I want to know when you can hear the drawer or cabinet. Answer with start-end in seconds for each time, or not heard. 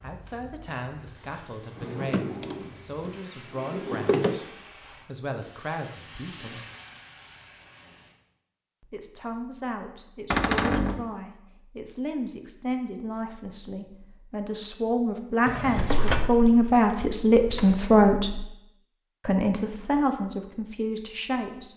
1.8-4.4, 10.3-11.1, 15.4-17.8.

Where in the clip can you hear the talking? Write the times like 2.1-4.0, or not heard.
0.0-4.5, 5.0-6.6, 8.8-18.4, 19.2-21.7.